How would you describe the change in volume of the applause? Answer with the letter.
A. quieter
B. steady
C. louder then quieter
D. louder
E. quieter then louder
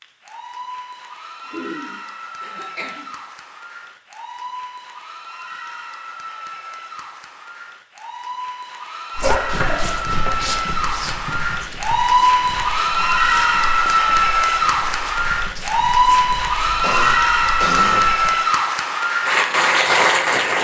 D.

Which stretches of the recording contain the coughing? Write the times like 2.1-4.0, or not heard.
1.5-3.0, 9.2-10.6, 16.6-18.1.